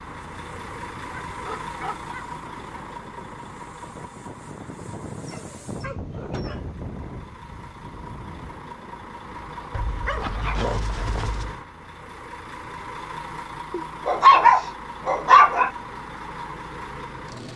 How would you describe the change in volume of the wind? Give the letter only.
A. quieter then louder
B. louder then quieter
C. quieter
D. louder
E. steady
B.